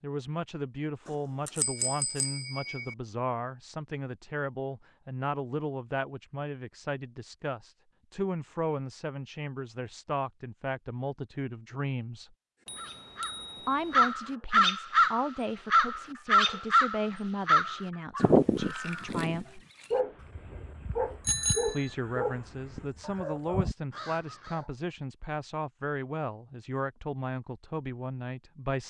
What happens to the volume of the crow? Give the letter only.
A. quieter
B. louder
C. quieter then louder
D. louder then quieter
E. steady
C.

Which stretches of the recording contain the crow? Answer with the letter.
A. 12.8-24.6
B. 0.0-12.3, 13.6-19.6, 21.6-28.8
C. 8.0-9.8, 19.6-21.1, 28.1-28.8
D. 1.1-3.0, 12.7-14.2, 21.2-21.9
A.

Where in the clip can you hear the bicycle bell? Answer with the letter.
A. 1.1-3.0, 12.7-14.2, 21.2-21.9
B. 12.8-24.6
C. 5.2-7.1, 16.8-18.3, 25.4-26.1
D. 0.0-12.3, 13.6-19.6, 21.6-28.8
A.